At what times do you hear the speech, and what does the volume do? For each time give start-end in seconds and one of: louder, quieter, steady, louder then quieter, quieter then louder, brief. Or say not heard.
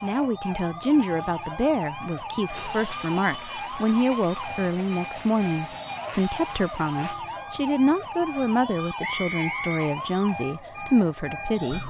0.0-11.8 steady.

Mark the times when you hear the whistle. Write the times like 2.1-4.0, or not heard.
9.0-9.9.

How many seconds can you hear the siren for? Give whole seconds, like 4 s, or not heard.
12 s.